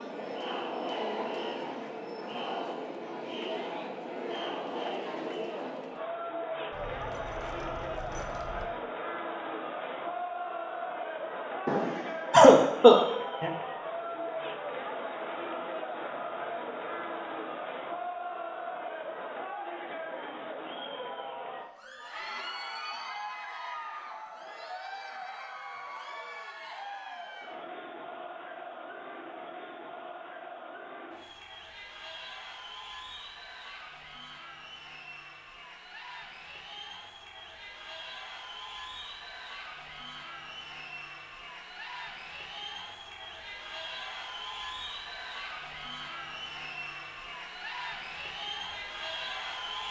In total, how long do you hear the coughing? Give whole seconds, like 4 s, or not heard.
2 s.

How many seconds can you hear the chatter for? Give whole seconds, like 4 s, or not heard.
50 s.